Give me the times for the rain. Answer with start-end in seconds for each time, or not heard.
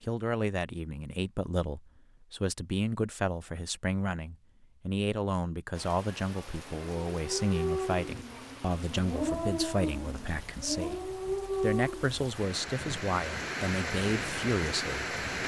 5.7-15.4.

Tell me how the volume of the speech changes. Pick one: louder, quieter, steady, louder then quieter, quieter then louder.
steady.